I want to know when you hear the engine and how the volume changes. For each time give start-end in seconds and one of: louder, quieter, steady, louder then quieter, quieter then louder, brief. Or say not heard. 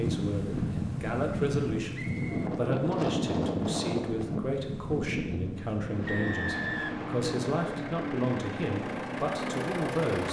5.8-10.2 louder.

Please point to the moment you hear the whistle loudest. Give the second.
7 s.